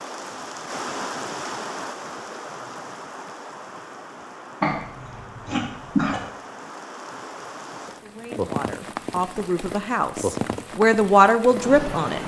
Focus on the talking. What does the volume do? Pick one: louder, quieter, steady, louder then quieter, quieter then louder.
louder.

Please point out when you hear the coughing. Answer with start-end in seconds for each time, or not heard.
4.6-6.2.